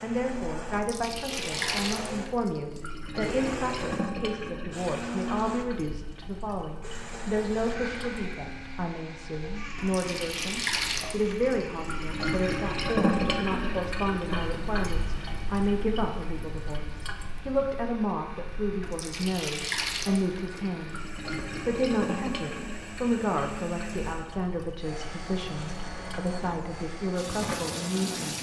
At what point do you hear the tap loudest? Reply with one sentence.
The loudest moment of the tap is at 13 seconds.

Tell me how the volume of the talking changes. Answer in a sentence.
The loudness of the talking stays about the same.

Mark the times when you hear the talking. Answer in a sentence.
The talking can be heard from 0.0 to 28.3 s.